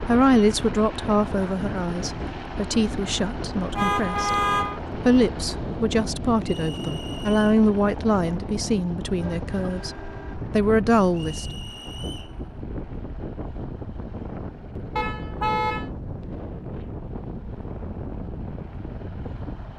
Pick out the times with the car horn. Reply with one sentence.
You can hear the car horn from 3.8 to 4.8 s, from 9.2 to 10.3 s and from 14.9 to 15.9 s.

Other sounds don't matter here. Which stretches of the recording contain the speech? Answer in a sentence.
The speech can be heard from 0.0 to 4.4 s and from 5.0 to 11.6 s.